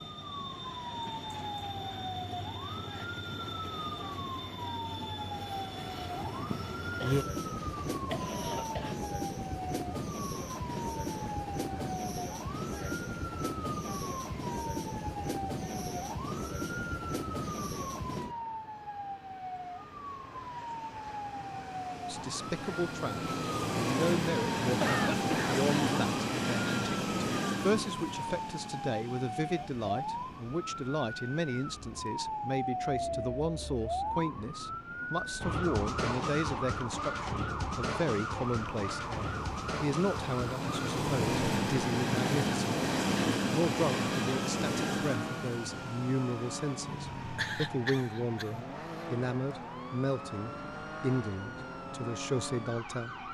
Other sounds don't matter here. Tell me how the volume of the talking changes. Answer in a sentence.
The volume of the talking stays about the same.